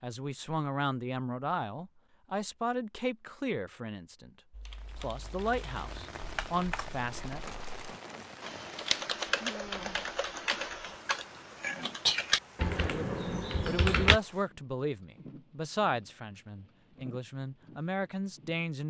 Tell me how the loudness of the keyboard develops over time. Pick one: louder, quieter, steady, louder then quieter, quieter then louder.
louder.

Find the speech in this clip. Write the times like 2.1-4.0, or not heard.
0.0-4.3, 5.0-7.4, 12.8-18.8.